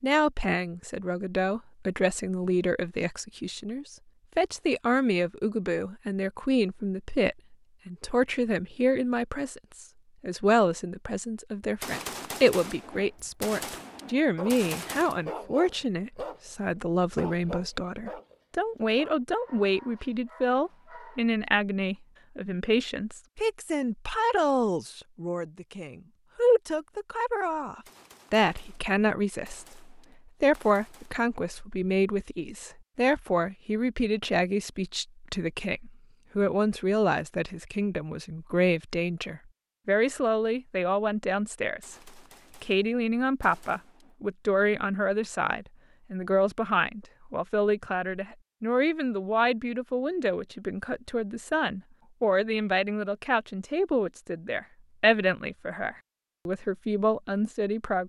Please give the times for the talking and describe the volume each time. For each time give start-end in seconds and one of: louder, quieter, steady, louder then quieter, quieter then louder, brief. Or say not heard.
0.0-58.0 steady.